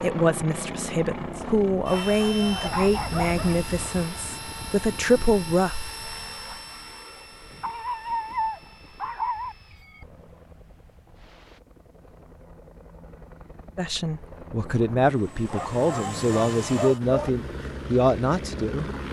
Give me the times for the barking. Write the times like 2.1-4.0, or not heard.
1.9-3.6, 7.6-9.6, 15.4-17.3.